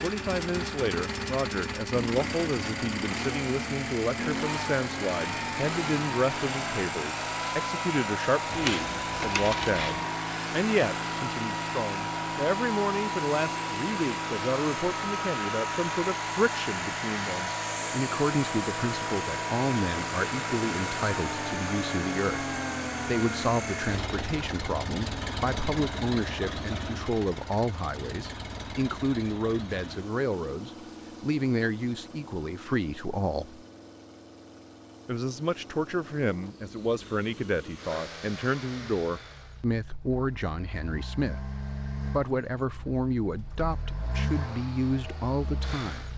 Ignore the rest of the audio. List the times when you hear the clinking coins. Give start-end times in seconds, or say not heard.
8.5-10.1.